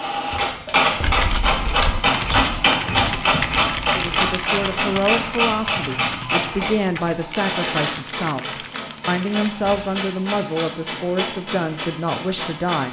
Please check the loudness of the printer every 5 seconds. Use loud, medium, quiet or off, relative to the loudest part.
loud, medium, medium.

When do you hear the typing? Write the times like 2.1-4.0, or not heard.
1.0-9.6.